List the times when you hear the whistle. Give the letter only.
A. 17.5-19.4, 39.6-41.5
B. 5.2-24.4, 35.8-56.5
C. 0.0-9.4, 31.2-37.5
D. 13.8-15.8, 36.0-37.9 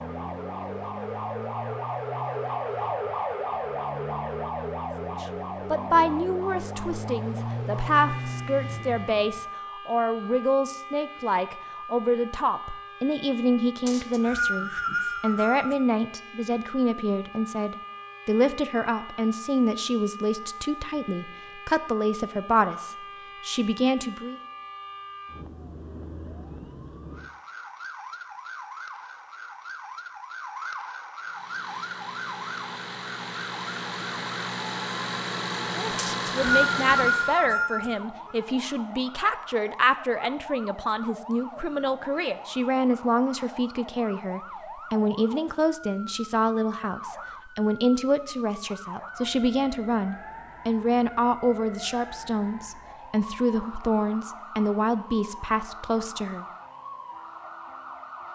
D.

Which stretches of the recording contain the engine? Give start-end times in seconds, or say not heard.
0.0-9.4, 31.2-37.5.